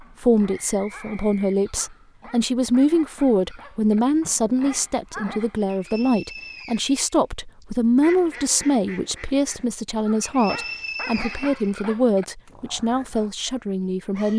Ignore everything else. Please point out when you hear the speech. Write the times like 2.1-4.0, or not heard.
0.2-14.3.